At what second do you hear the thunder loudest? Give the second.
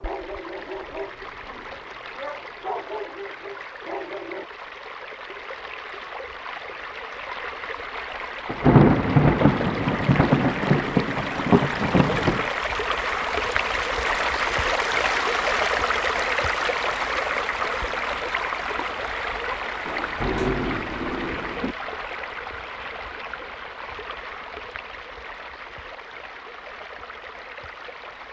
9 s.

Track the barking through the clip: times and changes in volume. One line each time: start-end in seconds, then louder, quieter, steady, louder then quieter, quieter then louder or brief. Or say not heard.
0.0-4.5 quieter then louder.